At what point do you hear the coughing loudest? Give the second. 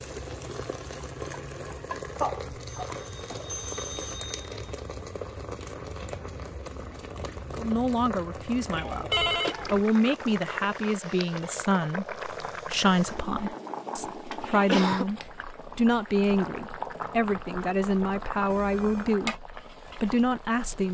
15 s.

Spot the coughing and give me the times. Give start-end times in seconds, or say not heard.
2.2-3.5, 8.8-9.8, 14.5-15.1.